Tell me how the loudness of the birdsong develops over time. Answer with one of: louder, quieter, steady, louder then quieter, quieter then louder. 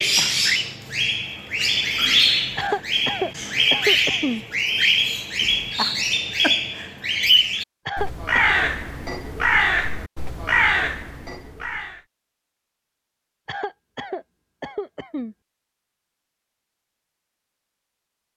steady.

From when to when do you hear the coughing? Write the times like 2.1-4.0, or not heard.
2.5-4.5, 7.8-8.6, 13.4-15.3.